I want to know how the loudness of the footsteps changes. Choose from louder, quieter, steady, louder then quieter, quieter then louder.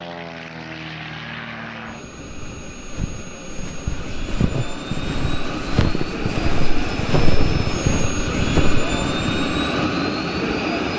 louder.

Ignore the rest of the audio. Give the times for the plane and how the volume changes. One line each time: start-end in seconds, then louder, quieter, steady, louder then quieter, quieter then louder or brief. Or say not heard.
0.0-10.9 louder.